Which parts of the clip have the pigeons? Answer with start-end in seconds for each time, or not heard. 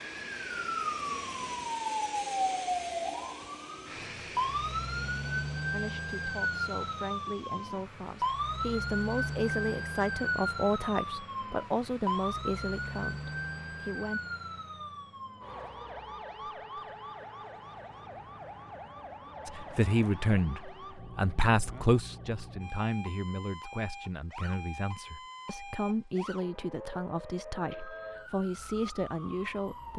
not heard.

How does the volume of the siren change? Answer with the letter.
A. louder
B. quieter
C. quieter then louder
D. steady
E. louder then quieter
B.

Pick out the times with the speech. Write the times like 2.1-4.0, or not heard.
5.7-14.2, 19.4-29.9.